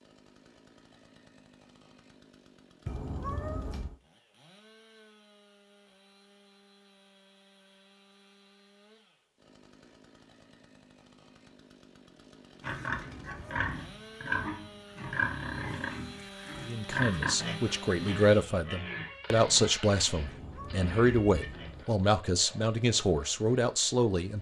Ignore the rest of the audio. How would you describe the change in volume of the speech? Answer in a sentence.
The loudness of the speech stays about the same.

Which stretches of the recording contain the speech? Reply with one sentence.
The speech can be heard from 16.6 to 24.3 s.